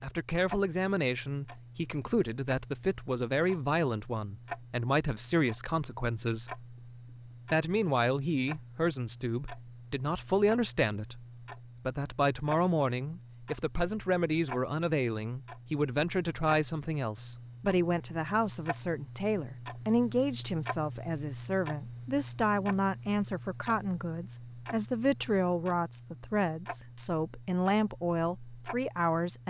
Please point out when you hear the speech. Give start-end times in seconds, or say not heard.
0.0-6.7, 7.5-11.2, 11.8-29.4.